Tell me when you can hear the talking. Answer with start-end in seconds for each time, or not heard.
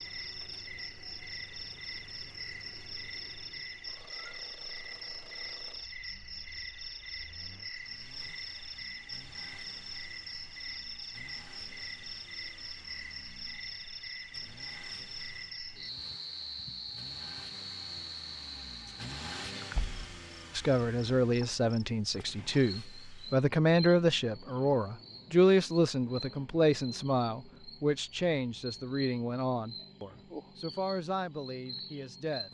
20.6-32.4.